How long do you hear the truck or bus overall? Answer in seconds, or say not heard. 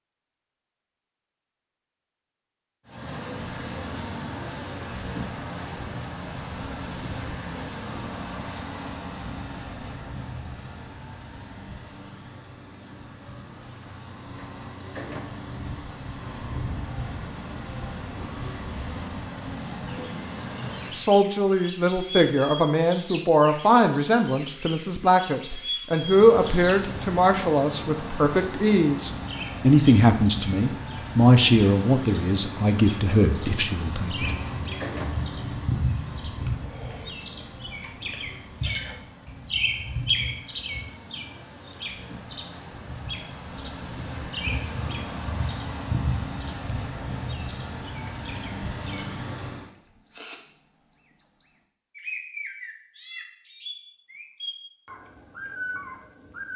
42 s.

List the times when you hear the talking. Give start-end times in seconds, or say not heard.
20.9-34.3.